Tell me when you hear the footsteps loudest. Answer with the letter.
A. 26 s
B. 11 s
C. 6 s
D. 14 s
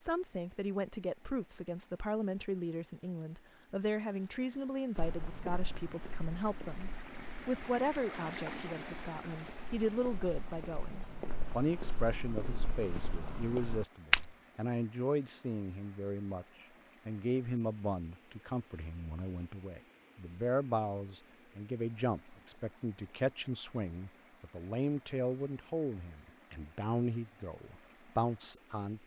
D.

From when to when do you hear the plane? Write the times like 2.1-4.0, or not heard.
not heard.